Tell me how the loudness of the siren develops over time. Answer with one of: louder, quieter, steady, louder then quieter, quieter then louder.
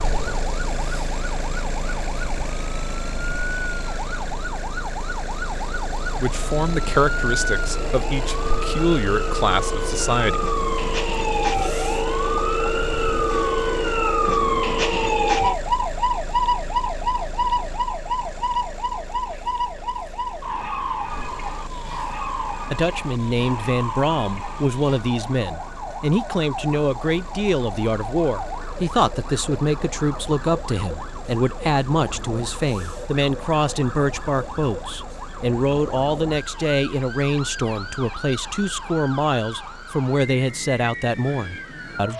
louder then quieter.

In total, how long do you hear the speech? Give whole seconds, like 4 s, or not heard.
24 s.